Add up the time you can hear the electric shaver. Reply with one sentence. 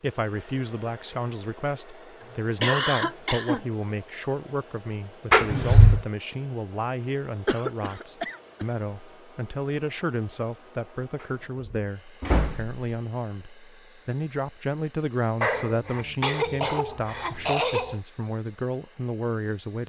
The electric shaver can't be heard in this clip.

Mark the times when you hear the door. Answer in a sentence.
The door can be heard from 5.3 to 6.0 s and from 11.2 to 12.8 s.